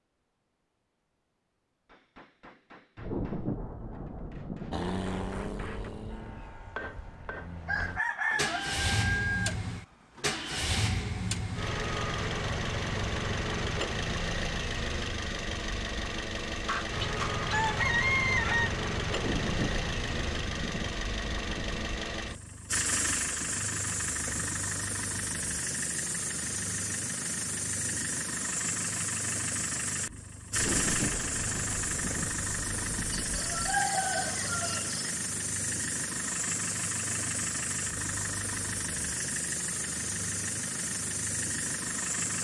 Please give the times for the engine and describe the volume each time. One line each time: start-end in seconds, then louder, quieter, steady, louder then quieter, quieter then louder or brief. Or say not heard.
4.7-42.3 steady.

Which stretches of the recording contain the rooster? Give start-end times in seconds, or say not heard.
7.7-9.6, 16.6-18.7, 33.1-35.1.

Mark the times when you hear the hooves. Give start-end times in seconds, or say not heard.
not heard.